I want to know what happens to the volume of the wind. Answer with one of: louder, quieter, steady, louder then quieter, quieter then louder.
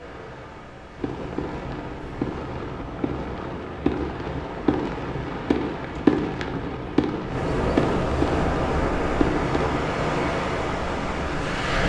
louder.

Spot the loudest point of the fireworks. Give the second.
6 s.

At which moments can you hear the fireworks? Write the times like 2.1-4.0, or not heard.
0.9-9.8.